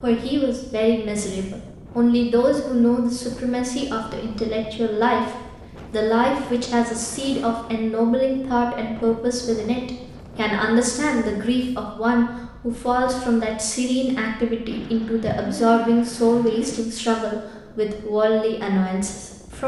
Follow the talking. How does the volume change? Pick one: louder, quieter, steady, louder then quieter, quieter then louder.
steady.